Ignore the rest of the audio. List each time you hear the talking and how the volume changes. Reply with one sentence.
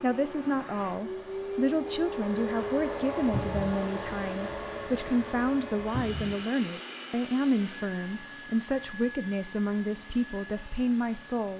The talking can be heard from 0.0 to 11.5 s, at a steady volume.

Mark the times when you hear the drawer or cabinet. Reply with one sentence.
The drawer or cabinet can be heard from 3.3 to 3.8 s and from 5.9 to 6.3 s.